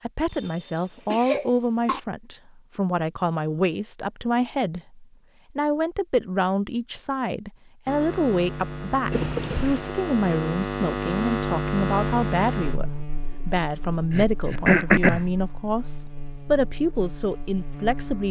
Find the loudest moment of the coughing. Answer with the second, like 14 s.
15 s.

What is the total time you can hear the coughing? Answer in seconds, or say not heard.
4 s.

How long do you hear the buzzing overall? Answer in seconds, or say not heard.
10 s.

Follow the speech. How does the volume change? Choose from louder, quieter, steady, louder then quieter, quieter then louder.
steady.